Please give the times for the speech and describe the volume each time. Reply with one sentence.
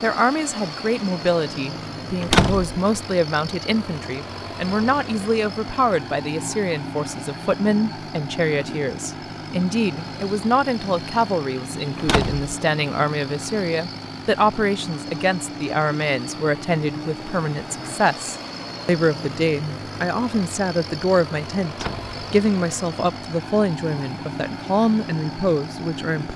You can hear the speech from 0.0 to 26.3 s, at a steady volume.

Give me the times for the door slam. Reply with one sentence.
The door slam can be heard from 2.2 to 2.8 s, from 11.9 to 12.4 s and from 21.6 to 22.1 s.